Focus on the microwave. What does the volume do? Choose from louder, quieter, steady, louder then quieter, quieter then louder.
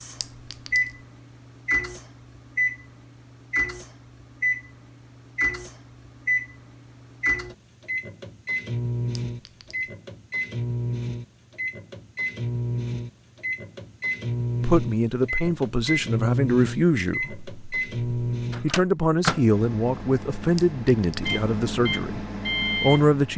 steady.